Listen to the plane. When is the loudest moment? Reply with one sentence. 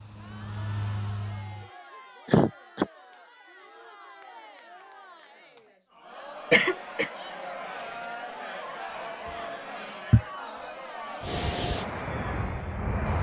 The loudest moment of the plane is at 12 seconds.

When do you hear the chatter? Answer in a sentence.
The chatter can be heard from 0.1 to 13.1 s.